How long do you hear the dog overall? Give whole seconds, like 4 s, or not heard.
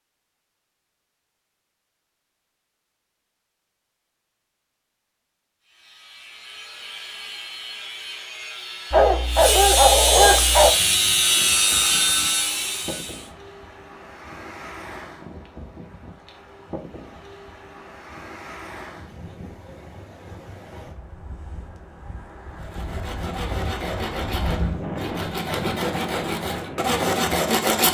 2 s.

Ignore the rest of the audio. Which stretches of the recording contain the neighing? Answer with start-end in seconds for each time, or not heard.
not heard.